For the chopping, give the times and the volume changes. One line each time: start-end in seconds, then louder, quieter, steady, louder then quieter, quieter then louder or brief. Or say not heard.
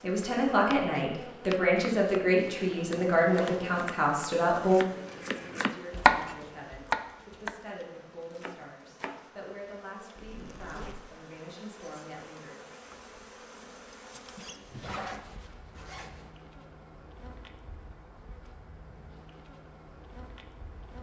0.7-9.3 louder then quieter.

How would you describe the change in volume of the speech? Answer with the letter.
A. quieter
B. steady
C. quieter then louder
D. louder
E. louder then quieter
A.